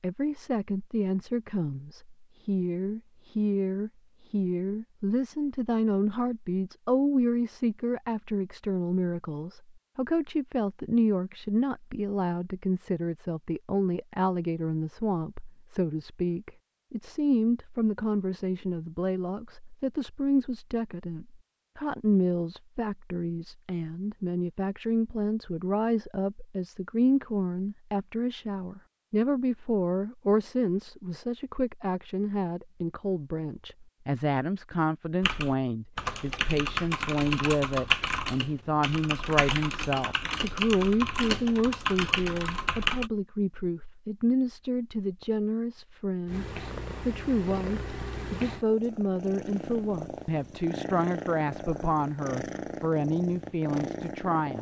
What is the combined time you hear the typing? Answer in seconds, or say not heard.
8 s.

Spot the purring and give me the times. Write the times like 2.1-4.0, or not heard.
46.2-54.5.